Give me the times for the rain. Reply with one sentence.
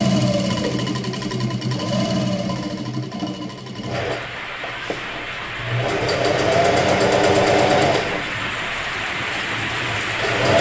The rain can be heard from 3.9 to 10.5 s.